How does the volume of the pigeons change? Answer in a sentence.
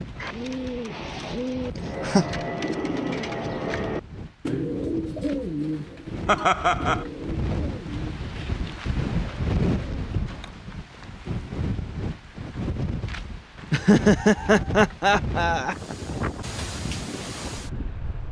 The volume of the pigeons goes down.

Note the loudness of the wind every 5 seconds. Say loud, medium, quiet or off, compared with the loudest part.
medium, loud, loud, loud.